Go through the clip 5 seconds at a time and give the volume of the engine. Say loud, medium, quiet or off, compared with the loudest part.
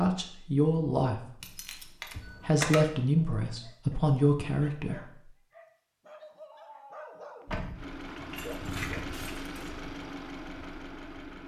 off, loud, loud.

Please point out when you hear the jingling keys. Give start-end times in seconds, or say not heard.
1.4-2.9, 7.5-9.7.